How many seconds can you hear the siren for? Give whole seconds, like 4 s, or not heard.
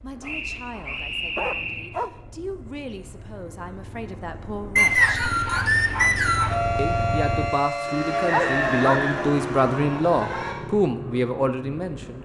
4 s.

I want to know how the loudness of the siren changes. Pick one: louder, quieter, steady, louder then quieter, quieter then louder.
quieter.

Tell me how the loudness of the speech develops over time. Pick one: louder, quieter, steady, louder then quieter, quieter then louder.
louder.